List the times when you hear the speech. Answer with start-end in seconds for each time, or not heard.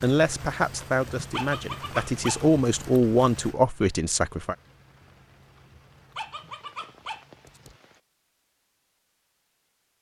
0.0-4.5.